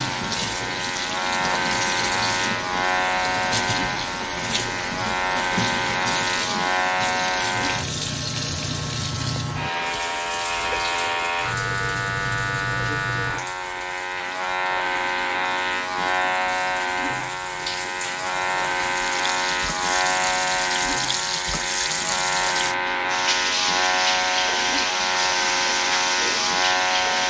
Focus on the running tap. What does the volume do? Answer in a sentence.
The volume of the running tap goes down, then up.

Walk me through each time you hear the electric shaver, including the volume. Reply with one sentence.
You can hear the electric shaver from 0.0 to 27.2 s, at a steady volume.